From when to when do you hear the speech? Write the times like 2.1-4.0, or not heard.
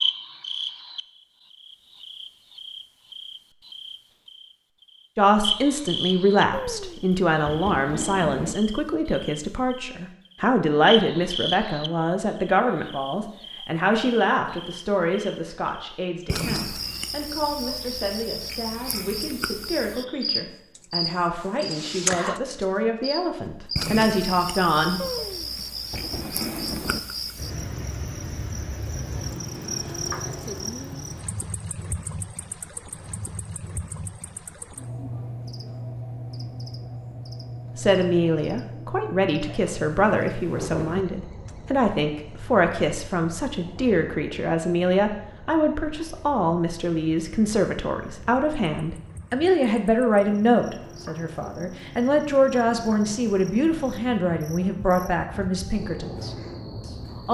5.2-25.0, 37.8-56.4.